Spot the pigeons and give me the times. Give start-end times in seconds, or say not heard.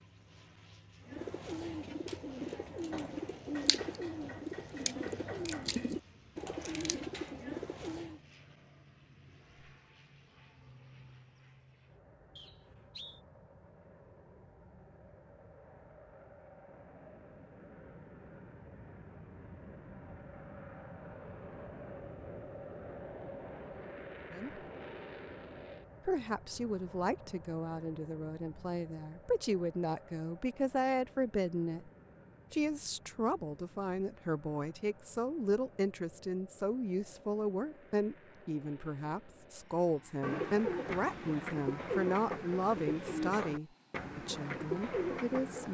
1.1-8.2, 40.2-45.6.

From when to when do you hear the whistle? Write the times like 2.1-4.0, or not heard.
12.3-13.2.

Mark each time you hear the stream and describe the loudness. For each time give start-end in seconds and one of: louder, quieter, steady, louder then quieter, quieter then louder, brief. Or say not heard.
not heard.